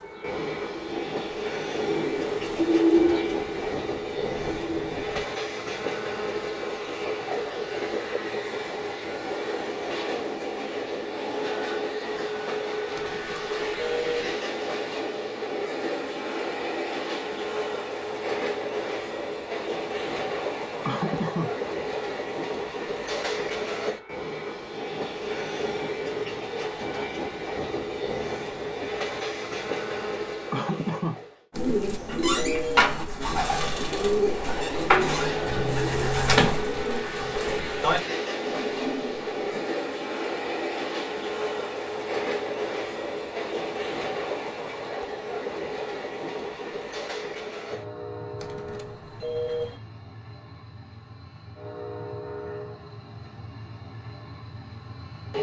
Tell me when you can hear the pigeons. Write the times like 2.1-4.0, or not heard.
0.0-5.2, 31.6-39.6.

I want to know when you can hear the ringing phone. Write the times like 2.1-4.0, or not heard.
12.9-14.3, 31.5-33.0, 48.4-49.8.